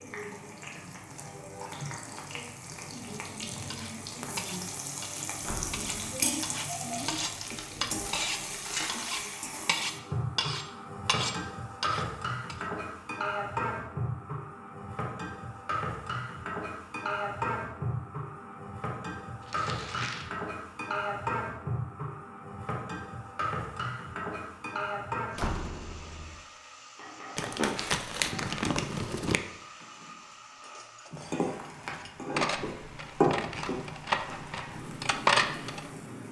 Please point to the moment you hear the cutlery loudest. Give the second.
35 s.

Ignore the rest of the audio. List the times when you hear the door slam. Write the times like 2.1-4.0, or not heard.
5.4-6.0, 25.4-26.4.